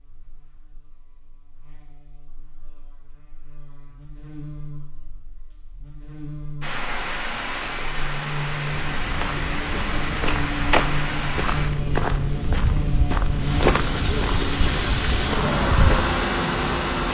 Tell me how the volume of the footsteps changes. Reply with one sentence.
The volume of the footsteps goes up, then down.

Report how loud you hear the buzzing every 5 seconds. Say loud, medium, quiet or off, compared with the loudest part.
quiet, medium, loud, loud.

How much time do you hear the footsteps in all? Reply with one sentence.
You can hear the footsteps for 7 seconds altogether.